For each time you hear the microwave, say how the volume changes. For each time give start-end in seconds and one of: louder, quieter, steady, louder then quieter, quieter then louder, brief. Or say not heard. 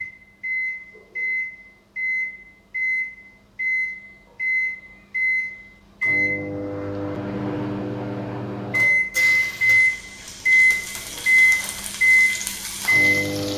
0.0-13.5 louder.